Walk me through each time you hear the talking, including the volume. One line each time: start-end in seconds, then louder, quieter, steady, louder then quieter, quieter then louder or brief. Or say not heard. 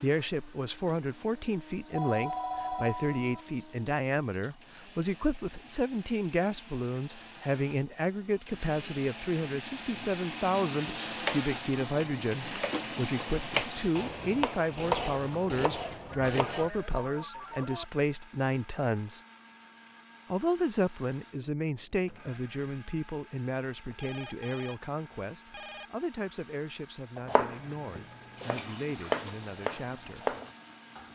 0.0-19.2 steady
20.3-30.4 quieter.